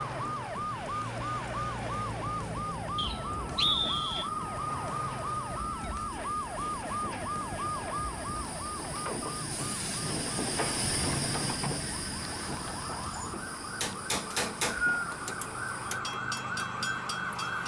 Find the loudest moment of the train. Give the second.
11 s.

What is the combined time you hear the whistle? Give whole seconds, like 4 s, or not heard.
2 s.